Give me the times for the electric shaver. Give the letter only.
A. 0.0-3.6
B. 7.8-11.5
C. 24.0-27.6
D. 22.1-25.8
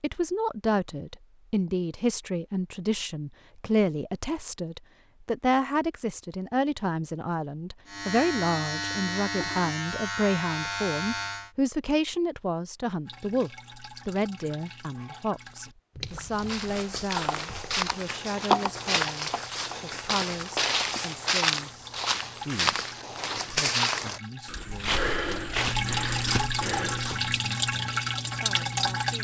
B.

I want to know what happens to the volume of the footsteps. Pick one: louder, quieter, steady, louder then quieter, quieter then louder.
steady.